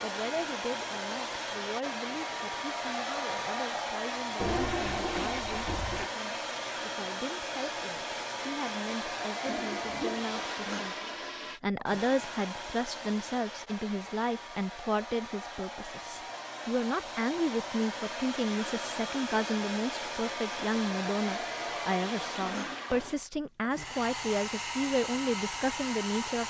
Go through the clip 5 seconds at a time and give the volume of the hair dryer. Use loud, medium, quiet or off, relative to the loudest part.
loud, loud, medium, loud, loud, loud.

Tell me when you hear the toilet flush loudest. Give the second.
5 s.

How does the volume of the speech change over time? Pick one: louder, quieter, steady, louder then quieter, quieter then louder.
louder.